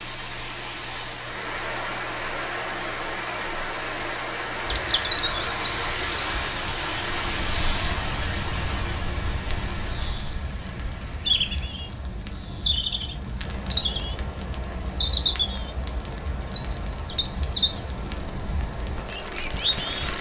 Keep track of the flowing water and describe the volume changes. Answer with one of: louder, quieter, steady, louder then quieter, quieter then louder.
quieter.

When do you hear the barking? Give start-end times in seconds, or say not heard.
not heard.